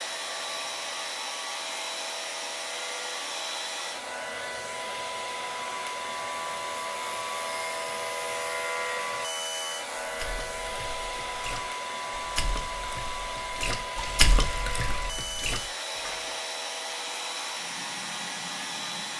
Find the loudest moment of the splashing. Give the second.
14 s.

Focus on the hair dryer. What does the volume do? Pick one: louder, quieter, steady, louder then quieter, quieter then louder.
steady.